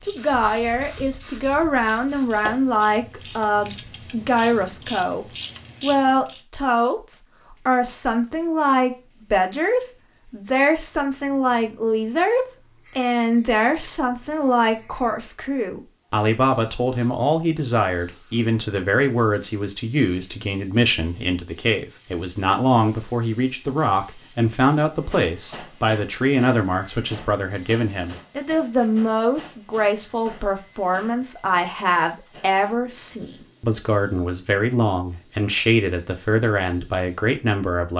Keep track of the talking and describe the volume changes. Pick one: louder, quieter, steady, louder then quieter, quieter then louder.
steady.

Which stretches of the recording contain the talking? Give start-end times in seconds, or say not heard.
0.0-37.9.